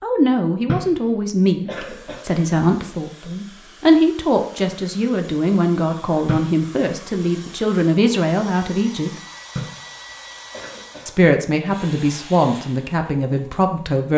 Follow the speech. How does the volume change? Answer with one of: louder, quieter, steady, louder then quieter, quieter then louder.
steady.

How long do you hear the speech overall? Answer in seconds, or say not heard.
12 s.